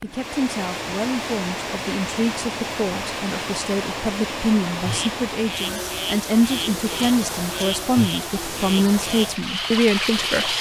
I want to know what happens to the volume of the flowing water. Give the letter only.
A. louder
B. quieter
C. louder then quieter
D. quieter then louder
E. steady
E.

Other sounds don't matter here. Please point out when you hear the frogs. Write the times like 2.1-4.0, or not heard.
4.8-10.5.